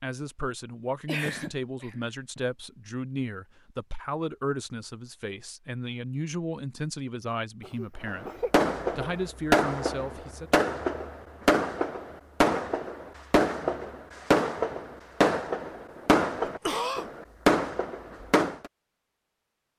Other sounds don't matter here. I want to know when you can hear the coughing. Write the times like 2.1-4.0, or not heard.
1.1-2.4, 7.6-8.5, 16.4-17.1.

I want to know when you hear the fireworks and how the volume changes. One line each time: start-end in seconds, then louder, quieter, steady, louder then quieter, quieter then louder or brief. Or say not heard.
8.1-18.7 steady.